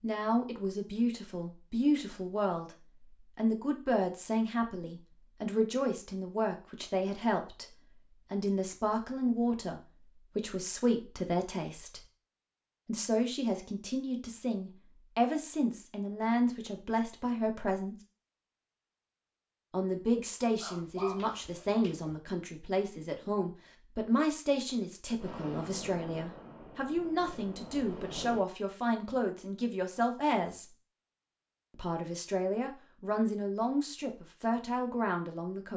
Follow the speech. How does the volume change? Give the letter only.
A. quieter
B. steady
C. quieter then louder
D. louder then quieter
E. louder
B.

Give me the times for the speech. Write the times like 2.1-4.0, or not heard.
0.0-12.0, 12.8-17.9, 19.7-30.6, 31.8-35.7.